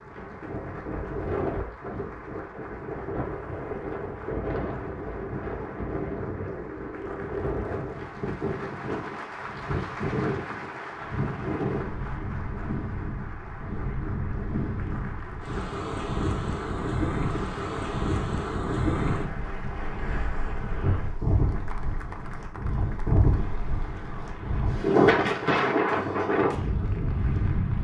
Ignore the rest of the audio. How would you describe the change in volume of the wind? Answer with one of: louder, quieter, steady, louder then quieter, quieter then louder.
louder.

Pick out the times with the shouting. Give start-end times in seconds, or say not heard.
not heard.